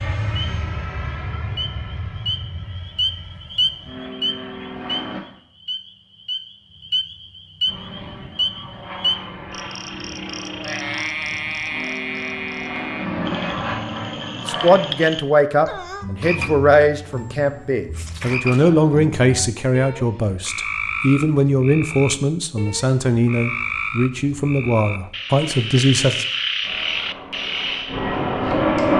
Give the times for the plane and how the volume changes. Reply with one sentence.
You can hear the plane from 0.0 to 5.2 s, getting quieter then louder; from 7.7 to 15.1 s, getting louder; and briefly from 26.6 to 28.9 s.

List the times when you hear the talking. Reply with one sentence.
The talking can be heard from 14.4 to 26.2 s.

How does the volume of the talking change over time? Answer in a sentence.
The volume of the talking stays about the same.